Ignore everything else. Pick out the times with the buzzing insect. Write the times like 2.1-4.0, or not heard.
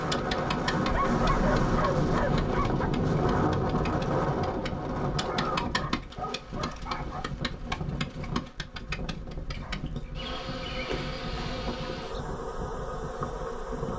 0.0-13.9.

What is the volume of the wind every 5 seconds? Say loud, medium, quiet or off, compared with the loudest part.
loud, medium, quiet.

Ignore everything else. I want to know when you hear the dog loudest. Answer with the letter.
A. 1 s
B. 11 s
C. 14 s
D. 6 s
A.